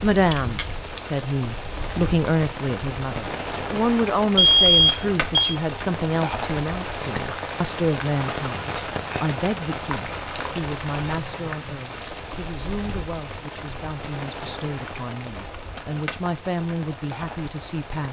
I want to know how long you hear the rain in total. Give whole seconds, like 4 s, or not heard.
18 s.